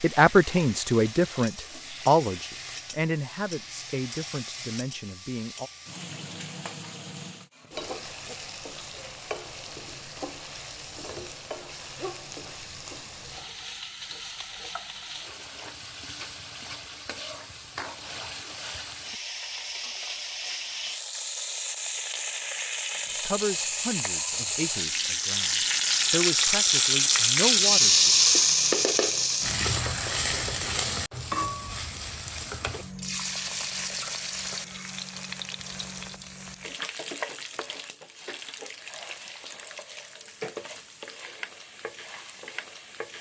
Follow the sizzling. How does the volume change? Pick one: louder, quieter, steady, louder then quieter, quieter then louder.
louder then quieter.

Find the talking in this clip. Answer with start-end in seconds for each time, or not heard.
0.0-5.7, 23.2-28.3.